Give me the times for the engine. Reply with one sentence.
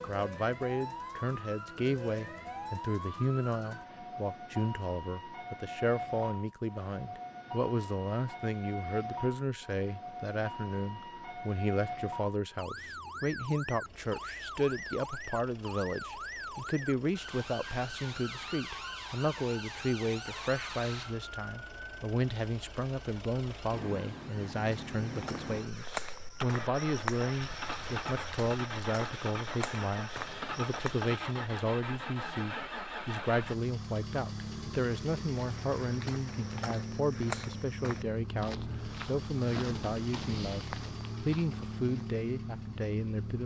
The engine can be heard from 12.6 to 43.4 s.